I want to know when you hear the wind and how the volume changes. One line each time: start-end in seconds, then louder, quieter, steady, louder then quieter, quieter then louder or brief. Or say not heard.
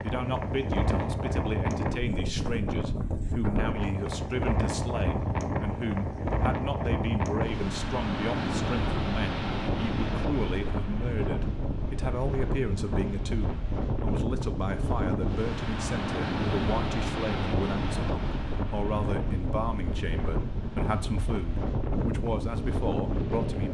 0.0-23.6 steady.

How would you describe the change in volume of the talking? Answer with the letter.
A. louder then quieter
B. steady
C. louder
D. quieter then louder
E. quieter
B.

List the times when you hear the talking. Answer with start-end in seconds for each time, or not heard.
0.0-23.6.